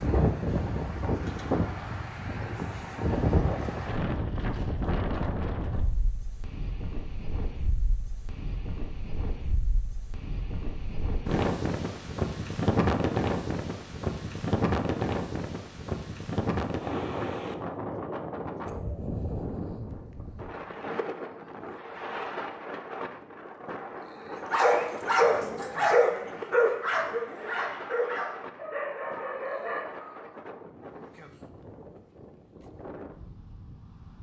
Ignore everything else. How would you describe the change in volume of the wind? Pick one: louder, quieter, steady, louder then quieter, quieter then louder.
quieter.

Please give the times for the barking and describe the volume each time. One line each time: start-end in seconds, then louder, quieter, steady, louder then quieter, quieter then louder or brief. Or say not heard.
24.4-30.1 quieter.